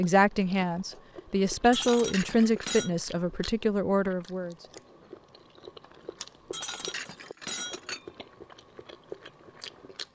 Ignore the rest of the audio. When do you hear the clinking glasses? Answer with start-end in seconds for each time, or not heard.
1.7-2.9, 6.5-8.1.